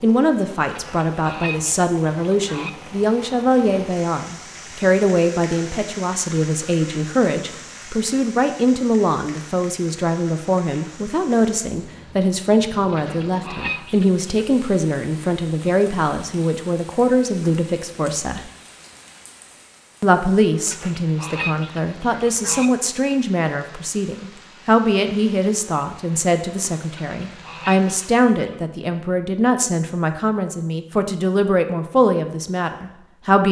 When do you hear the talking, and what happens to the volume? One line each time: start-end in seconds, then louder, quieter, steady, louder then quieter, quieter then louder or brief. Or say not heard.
0.0-18.5 steady
20.0-33.4 steady.